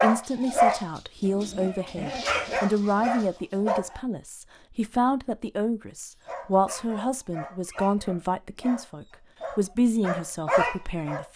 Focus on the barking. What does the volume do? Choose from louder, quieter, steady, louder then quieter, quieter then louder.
quieter then louder.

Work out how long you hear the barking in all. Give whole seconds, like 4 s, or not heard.
9 s.